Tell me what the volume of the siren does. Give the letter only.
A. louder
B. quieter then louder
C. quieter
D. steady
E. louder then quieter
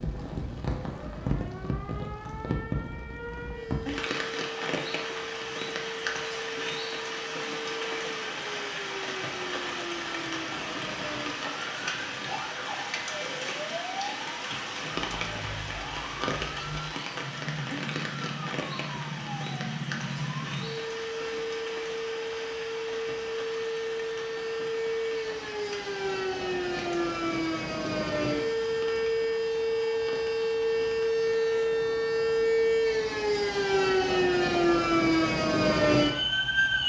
A.